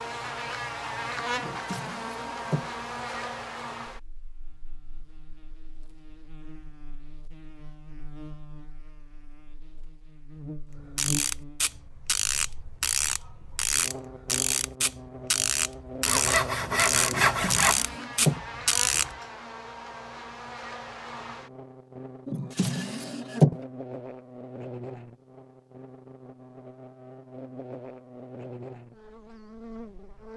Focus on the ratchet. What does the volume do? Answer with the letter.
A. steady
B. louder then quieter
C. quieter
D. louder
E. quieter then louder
A.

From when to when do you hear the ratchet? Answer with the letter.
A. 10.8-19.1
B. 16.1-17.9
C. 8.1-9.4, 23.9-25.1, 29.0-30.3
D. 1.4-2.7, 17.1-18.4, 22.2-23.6
A.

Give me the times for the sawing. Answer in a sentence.
The sawing can be heard from 16.1 to 17.9 s.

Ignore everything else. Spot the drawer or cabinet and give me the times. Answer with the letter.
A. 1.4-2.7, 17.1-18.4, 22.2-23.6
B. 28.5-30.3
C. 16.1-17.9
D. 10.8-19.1
A.